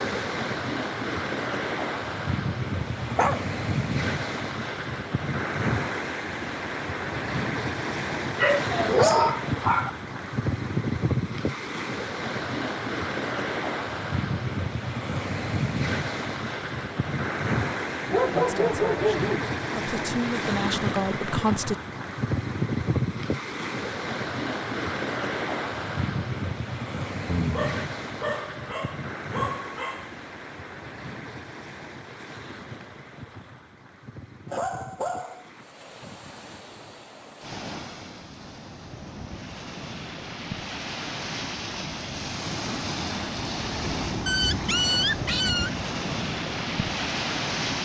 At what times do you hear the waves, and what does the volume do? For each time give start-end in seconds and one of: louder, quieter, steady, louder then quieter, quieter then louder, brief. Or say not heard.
0.0-47.8 quieter then louder.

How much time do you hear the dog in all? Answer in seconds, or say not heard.
9 s.